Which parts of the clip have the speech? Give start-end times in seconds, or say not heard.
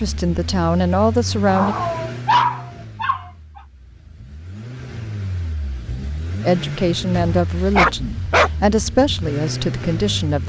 0.0-1.8, 6.4-10.4.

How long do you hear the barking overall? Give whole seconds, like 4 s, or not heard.
3 s.